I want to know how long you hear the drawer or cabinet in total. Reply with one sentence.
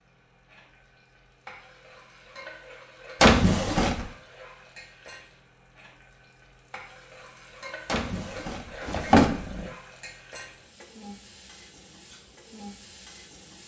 You can hear the drawer or cabinet for 3 seconds altogether.